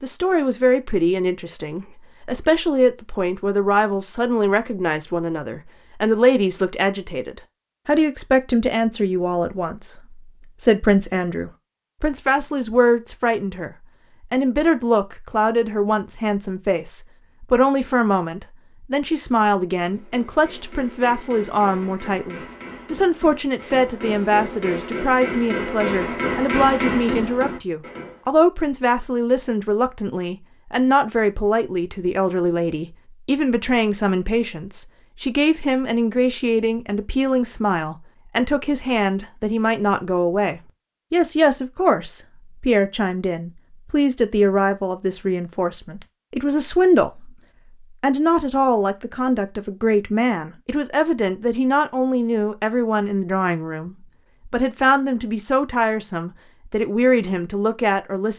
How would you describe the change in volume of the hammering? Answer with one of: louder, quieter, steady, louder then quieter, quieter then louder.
louder.